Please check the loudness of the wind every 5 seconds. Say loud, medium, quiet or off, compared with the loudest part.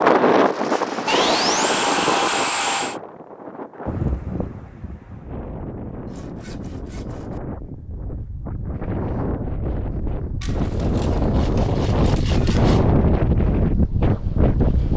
loud, medium, loud.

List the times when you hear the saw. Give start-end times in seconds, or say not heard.
1.1-3.0, 6.1-7.4, 10.4-12.8.